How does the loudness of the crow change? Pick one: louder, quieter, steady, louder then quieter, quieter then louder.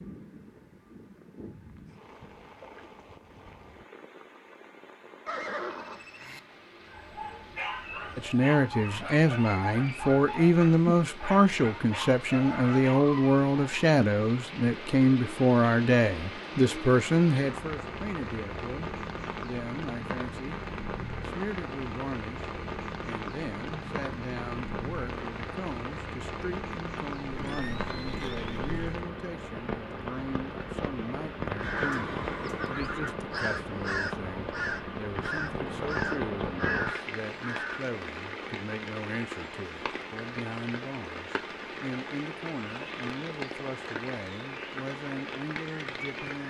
louder.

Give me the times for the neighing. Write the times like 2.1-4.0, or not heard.
5.2-6.4, 27.3-29.0, 31.6-33.1.